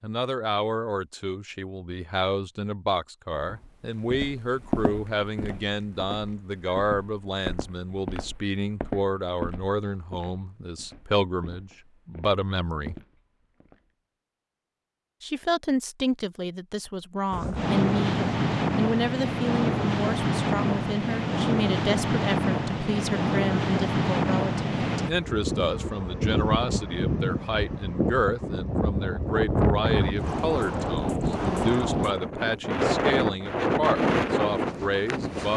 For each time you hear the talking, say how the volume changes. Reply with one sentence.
You can hear the talking from 0.0 to 12.9 s, at a steady volume; and from 15.2 to 35.5 s, at a steady volume.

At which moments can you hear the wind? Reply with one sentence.
The wind can be heard from 17.3 to 35.5 s.